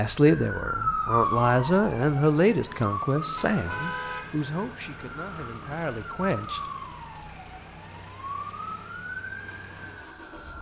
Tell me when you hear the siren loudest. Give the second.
1 s.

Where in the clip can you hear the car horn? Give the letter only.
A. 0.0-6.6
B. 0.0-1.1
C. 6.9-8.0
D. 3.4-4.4
D.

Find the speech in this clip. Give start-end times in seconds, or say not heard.
0.0-6.6.